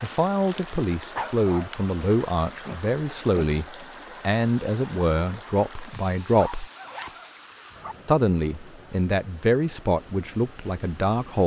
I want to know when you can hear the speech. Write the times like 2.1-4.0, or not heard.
0.0-6.7, 8.1-11.4.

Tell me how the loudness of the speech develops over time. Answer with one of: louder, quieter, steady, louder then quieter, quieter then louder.
steady.